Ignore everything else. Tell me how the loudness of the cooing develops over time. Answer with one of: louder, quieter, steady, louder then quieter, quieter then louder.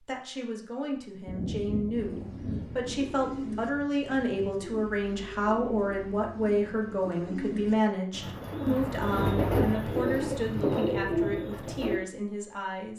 louder.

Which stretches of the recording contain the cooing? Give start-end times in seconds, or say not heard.
1.9-12.0.